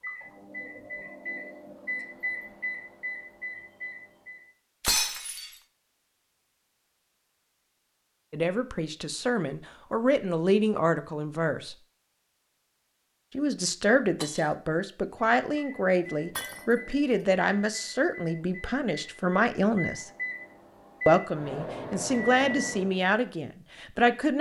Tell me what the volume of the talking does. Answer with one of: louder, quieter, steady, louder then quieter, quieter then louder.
steady.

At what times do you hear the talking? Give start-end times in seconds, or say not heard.
8.3-11.8, 13.3-20.1, 21.1-24.3.